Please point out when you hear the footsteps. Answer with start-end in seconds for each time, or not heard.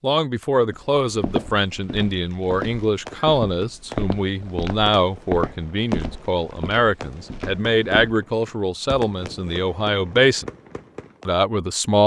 0.7-8.2.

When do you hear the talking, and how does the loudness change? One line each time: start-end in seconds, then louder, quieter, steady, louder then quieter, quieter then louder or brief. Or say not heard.
0.0-10.5 steady
11.2-12.0 brief.